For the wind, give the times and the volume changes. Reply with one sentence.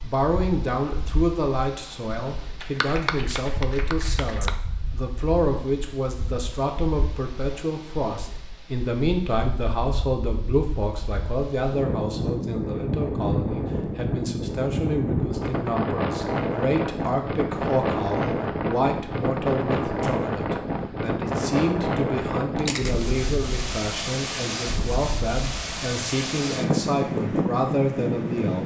You can hear the wind from 0.0 to 28.6 s, getting louder.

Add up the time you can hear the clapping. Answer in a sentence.
The clapping can be heard for 2 seconds in total.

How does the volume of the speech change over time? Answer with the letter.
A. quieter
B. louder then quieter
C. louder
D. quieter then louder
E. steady
E.